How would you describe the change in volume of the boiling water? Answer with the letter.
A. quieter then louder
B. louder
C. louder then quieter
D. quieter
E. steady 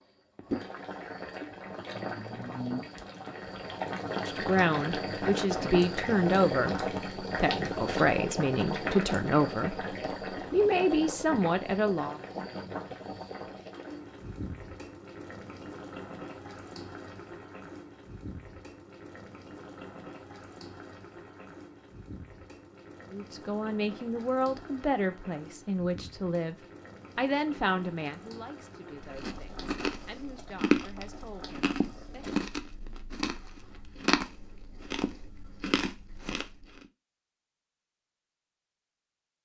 D.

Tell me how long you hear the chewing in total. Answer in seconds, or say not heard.
8 s.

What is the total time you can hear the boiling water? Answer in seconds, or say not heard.
32 s.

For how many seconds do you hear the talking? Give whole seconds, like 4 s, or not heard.
17 s.